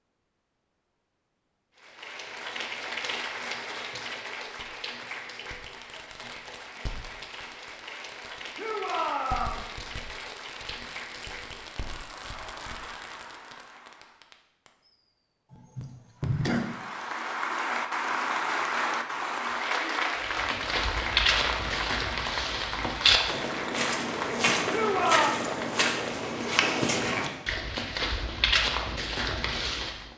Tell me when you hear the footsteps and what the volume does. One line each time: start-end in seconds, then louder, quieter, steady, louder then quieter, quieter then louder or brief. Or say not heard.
20.1-30.1 steady.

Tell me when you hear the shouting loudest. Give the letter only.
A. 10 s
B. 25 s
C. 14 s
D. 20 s
B.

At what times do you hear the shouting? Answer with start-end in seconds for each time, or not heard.
8.6-9.7, 24.6-25.3.